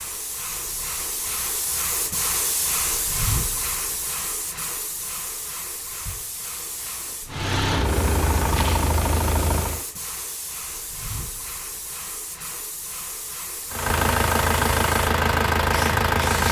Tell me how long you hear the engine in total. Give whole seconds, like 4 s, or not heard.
5 s.